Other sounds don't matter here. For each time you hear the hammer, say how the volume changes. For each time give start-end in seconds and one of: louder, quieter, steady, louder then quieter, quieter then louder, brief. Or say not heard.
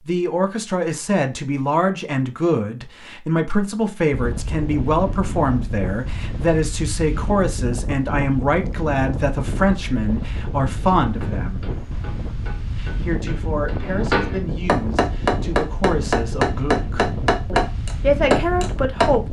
11.2-19.1 louder.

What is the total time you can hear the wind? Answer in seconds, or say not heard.
15 s.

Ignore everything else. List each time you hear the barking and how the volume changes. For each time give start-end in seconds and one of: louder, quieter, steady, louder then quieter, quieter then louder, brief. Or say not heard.
not heard.